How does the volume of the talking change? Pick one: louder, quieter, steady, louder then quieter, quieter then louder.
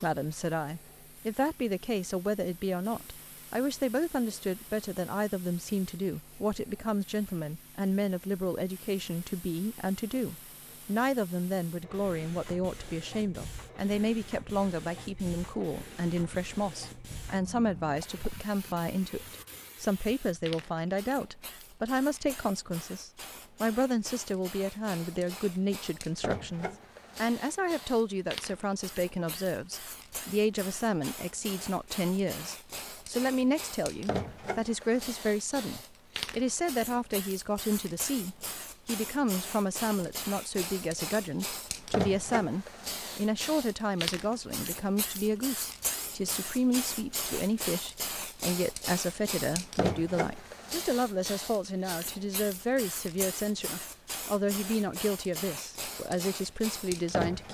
steady.